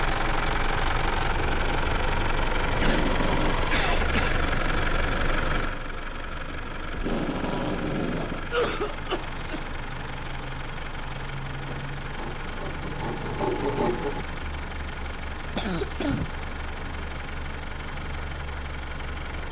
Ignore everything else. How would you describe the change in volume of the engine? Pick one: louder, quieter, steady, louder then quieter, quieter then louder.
quieter.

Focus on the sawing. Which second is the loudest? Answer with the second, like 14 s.
14 s.